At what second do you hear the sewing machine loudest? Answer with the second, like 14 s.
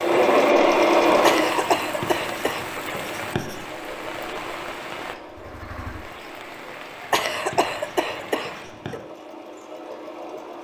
1 s.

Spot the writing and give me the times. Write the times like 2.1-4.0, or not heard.
1.8-3.6, 7.3-9.0.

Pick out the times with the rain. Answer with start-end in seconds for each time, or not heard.
0.0-8.8.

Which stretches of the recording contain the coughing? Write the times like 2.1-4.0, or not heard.
1.2-2.6, 7.1-9.0.